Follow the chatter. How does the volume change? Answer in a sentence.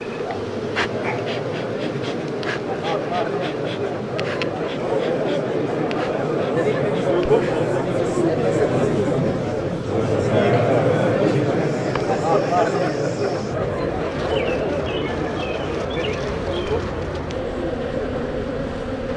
The volume of the chatter goes up, then down.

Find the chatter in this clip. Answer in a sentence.
The chatter can be heard from 0.0 to 19.1 s.